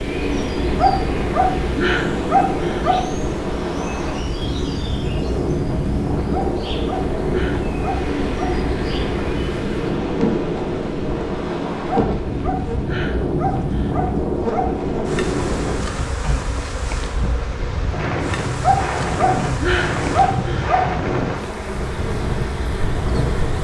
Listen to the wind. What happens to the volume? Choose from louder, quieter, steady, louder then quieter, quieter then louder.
steady.